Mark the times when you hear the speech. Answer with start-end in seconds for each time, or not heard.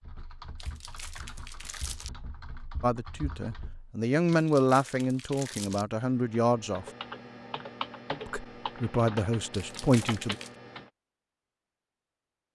2.8-6.8, 8.2-10.3.